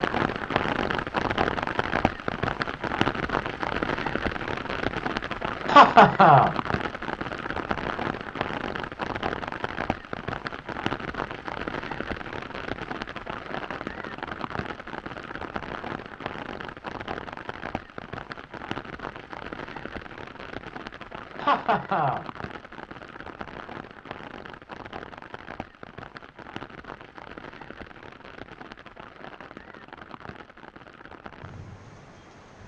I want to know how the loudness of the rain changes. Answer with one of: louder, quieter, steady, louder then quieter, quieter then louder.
quieter.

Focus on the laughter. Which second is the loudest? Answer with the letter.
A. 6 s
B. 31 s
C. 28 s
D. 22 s
A.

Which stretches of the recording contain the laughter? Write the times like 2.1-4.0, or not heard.
5.7-6.5, 21.4-22.2.